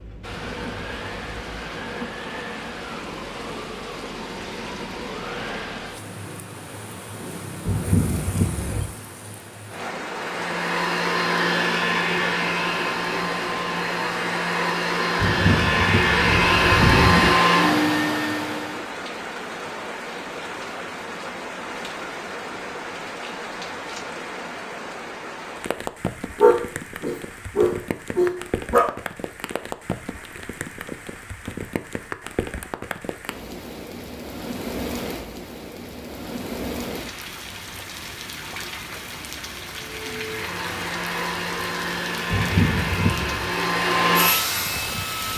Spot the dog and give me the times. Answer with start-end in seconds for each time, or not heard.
26.4-28.9.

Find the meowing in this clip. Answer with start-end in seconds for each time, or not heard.
7.7-8.8, 15.2-17.4, 42.3-43.5.